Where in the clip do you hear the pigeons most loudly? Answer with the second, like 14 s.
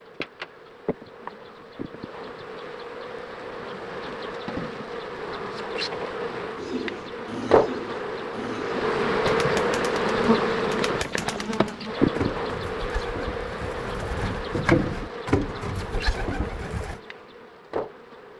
15 s.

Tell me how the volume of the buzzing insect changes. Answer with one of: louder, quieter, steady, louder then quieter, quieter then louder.
louder then quieter.